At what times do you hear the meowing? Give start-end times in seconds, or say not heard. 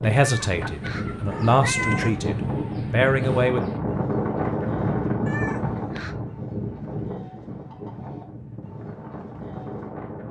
0.1-2.3, 5.2-6.2.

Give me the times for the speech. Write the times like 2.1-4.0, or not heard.
0.0-3.6.